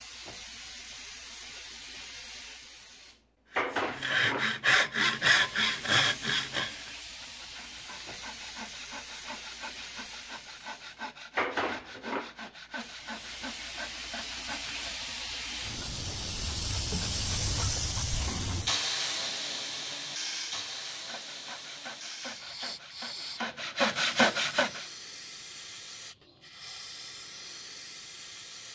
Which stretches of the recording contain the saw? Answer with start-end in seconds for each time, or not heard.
3.5-15.1, 20.7-24.9.